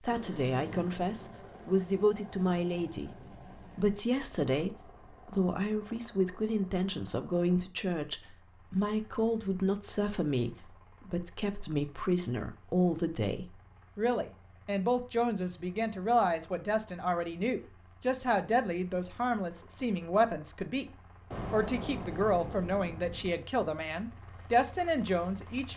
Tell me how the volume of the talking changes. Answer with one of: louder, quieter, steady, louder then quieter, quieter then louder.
steady.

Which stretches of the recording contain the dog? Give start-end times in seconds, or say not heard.
not heard.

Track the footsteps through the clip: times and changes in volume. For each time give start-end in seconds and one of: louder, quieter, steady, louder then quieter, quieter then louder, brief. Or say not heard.
not heard.